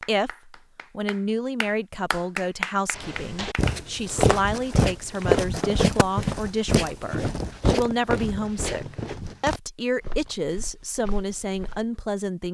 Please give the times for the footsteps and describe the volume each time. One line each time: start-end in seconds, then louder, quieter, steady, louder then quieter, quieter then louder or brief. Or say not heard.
3.0-11.8 quieter.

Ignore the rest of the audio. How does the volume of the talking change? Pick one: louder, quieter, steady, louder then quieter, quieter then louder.
steady.